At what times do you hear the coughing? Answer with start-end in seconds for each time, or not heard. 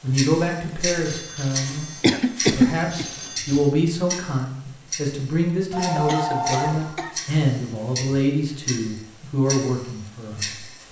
2.0-3.0, 5.9-7.2.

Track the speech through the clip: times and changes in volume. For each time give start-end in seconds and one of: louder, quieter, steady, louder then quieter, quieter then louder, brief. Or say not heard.
0.0-1.9 brief
2.5-10.8 steady.